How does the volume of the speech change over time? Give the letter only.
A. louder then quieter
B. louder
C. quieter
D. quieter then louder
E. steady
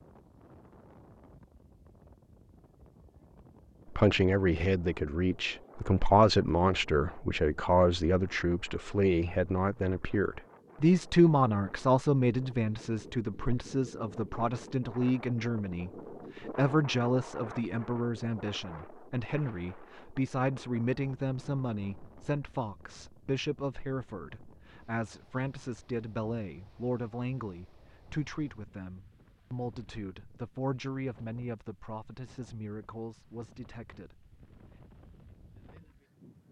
C.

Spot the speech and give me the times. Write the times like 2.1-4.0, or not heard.
3.9-34.2.